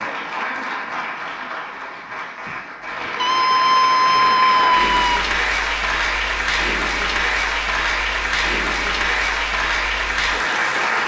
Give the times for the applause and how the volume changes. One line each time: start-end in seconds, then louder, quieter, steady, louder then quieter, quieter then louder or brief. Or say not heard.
0.0-11.0 louder.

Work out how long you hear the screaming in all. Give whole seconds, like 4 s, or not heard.
2 s.